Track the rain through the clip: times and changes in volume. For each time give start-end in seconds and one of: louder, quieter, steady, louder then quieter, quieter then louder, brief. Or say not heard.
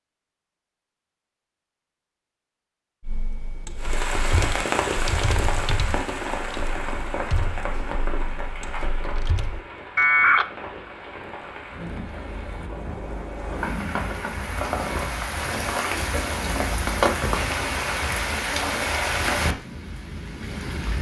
3.8-20.9 quieter then louder.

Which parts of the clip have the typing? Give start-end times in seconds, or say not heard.
3.0-10.4.